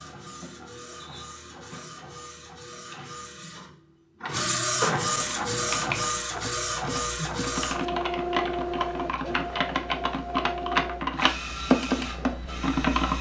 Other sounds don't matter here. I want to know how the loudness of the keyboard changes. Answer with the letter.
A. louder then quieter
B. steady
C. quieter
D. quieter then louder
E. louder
E.